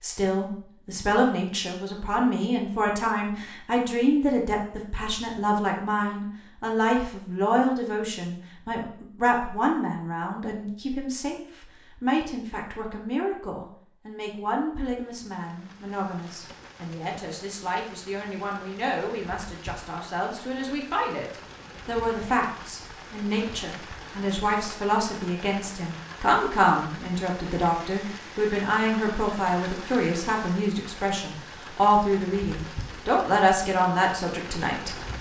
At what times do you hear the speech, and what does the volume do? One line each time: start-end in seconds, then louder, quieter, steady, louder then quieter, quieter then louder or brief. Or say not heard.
0.0-35.1 quieter then louder.